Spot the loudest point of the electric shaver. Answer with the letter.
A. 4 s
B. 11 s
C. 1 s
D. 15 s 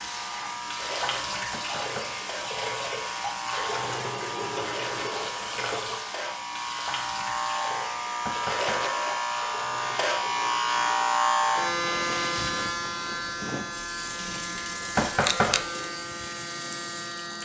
B.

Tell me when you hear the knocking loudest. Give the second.
15 s.